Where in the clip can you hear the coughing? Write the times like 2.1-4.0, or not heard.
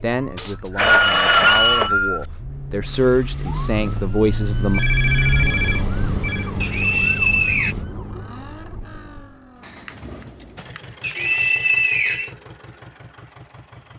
not heard.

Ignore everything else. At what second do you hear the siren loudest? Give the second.
5 s.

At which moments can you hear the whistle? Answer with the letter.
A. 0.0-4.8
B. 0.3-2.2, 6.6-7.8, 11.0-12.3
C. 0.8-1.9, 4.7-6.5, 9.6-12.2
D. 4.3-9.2
B.